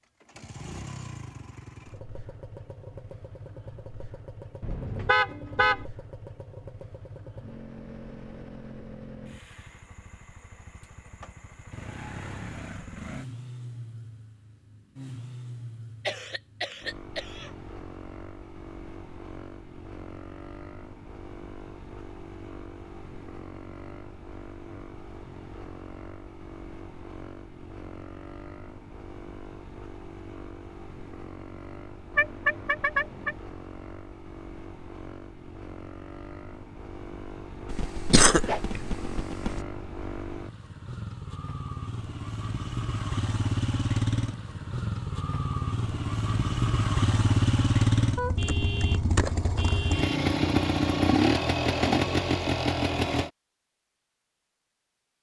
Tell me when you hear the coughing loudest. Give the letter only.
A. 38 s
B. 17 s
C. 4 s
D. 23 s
A.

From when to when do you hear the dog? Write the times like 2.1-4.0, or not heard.
not heard.